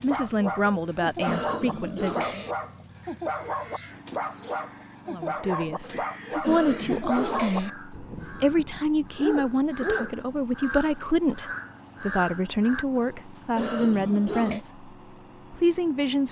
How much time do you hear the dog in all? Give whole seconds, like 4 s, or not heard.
10 s.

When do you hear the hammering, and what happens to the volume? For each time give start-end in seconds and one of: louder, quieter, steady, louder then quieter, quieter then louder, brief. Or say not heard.
not heard.